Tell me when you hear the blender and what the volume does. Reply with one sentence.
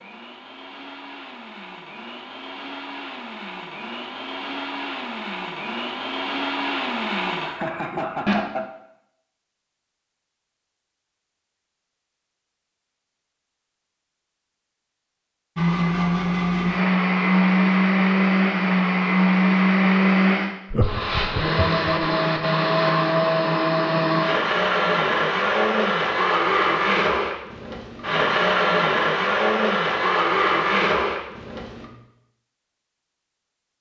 The blender can be heard from 0.0 to 8.3 s, getting louder; and from 15.6 to 31.9 s, at a steady volume.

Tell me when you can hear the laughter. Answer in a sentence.
You can hear the laughter from 7.5 to 8.7 s and from 20.7 to 21.9 s.